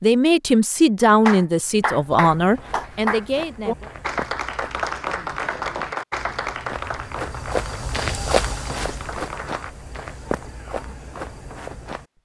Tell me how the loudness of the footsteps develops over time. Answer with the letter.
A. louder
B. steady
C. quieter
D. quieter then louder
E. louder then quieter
E.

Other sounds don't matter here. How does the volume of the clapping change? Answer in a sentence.
The loudness of the clapping goes down.